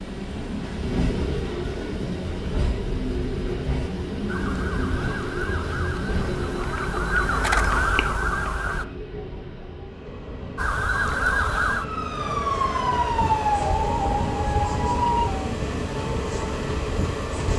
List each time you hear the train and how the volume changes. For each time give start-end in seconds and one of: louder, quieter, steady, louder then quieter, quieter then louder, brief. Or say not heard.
0.0-17.5 quieter then louder.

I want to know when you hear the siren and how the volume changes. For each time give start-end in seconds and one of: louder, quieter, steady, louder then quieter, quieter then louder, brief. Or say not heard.
4.2-8.8 louder
10.6-17.5 quieter.